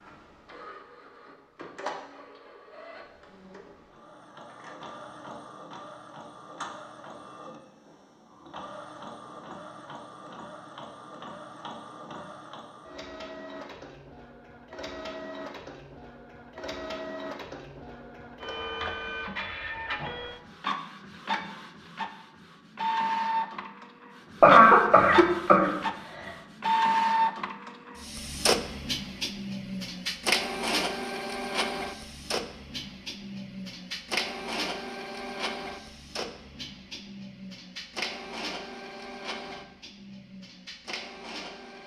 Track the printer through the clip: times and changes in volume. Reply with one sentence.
The printer can be heard from 0.0 to 41.8 s, getting louder then quieter.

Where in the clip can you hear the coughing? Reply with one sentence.
You can hear the coughing from 24.4 to 26.3 s.